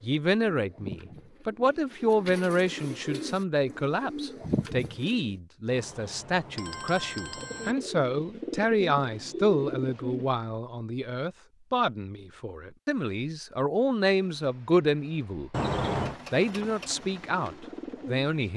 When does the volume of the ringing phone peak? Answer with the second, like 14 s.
16 s.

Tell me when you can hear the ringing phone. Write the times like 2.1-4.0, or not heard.
5.7-7.8, 15.5-16.2.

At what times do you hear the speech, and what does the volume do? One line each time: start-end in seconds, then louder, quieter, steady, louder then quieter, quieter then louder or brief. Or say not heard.
0.0-15.5 steady
16.3-18.5 brief.